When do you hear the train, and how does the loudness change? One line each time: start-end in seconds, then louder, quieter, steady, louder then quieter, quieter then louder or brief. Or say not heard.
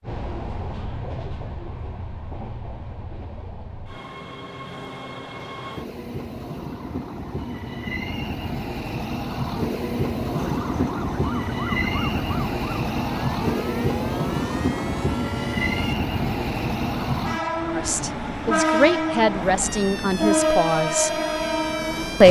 0.0-22.2 louder.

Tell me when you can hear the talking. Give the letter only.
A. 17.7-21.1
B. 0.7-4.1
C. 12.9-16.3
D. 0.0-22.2
A.